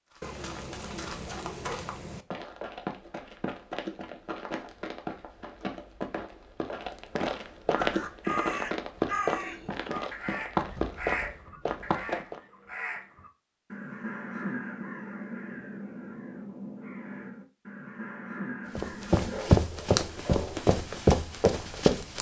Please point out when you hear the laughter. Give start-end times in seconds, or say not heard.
not heard.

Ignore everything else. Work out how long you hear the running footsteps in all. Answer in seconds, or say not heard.
16 s.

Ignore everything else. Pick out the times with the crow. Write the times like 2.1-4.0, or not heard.
7.8-19.4.